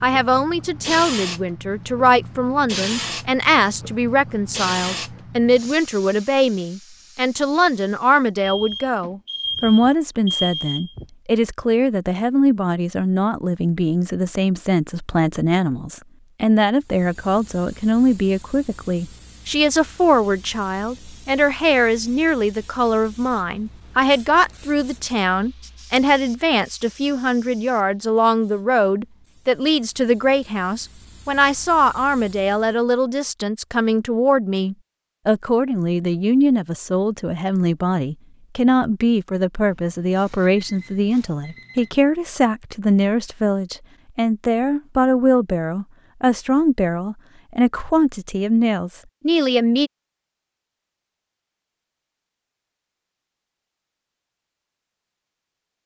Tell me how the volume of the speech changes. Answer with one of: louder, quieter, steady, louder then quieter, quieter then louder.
steady.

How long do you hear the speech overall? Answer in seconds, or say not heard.
50 s.